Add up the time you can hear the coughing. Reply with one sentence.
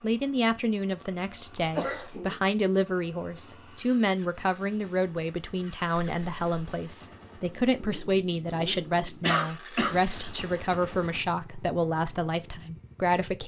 The coughing can be heard for 2 seconds in total.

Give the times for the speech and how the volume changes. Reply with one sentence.
The speech can be heard from 0.0 to 13.4 s, at a steady volume.